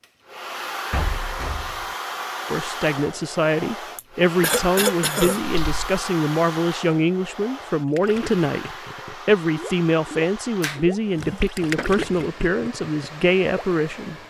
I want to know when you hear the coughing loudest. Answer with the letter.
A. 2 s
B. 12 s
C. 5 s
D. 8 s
C.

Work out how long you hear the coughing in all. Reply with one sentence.
The coughing can be heard for 2 seconds in total.